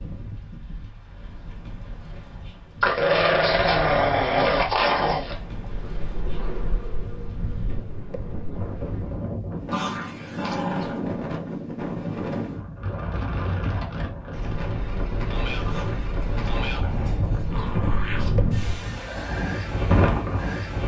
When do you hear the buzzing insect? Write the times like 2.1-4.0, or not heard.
5.3-9.2, 14.7-18.8.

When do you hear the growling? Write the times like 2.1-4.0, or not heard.
2.8-5.3, 9.7-11.0, 15.7-18.4.